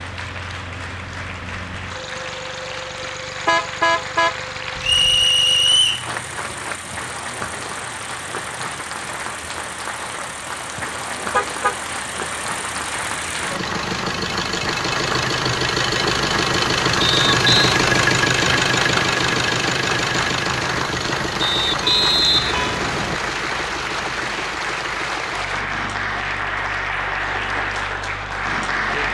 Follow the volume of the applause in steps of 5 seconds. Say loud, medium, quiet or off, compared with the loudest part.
medium, medium, medium, loud, loud, loud.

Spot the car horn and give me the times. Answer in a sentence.
The car horn can be heard from 3.5 to 5.2 s, from 11.3 to 11.8 s and from 21.8 to 22.9 s.